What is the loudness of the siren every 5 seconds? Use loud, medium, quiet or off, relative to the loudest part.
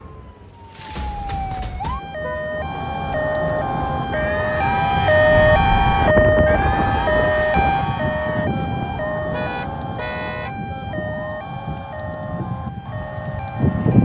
medium, loud, quiet.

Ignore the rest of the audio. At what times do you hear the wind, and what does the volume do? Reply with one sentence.
The wind can be heard from 5.2 to 14.0 s, getting quieter.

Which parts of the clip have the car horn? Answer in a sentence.
You can hear the car horn from 2.2 to 2.6 s and from 9.3 to 10.5 s.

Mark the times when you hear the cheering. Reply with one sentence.
You can hear the cheering from 2.5 to 14.0 s.